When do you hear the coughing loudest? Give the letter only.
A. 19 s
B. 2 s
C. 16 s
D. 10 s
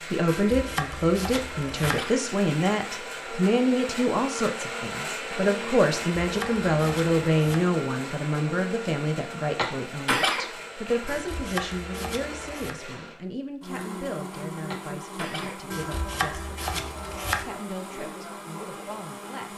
D.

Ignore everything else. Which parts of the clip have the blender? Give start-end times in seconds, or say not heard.
0.0-19.5.